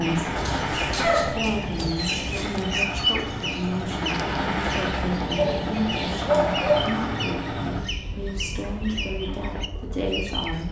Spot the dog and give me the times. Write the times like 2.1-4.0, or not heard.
0.3-1.9, 5.3-7.0.